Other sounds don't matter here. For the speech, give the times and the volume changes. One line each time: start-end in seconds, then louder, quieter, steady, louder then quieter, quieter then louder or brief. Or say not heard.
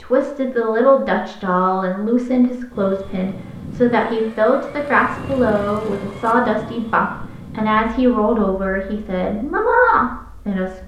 0.0-10.8 steady.